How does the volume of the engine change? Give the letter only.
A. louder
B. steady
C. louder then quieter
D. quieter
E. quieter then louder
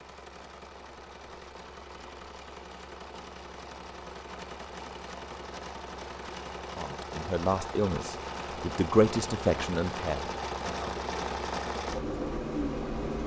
A.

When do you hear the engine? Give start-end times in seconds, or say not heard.
0.0-13.2.